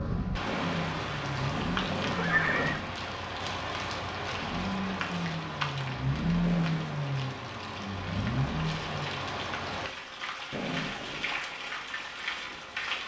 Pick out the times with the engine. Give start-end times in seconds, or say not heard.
0.0-3.0, 4.3-9.2.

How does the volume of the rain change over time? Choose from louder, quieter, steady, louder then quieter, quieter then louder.
steady.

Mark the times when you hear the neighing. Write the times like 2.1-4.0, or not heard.
0.5-2.8, 6.4-7.0, 10.5-11.4.